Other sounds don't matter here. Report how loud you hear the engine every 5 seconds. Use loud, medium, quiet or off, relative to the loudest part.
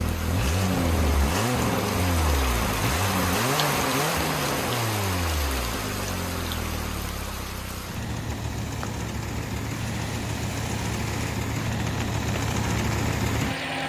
loud, medium, loud.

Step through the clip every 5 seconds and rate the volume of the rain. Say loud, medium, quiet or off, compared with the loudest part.
loud, medium, medium.